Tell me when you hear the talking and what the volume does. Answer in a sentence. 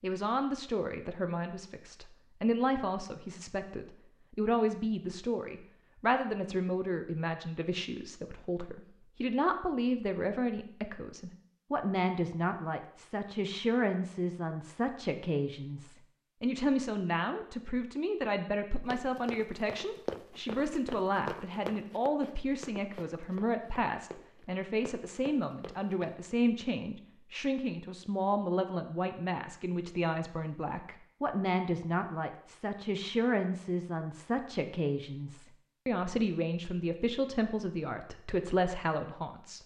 The talking can be heard from 0.0 to 39.6 s, at a steady volume.